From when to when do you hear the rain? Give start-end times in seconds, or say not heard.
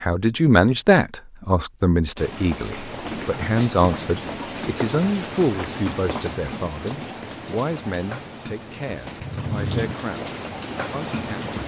2.1-11.6.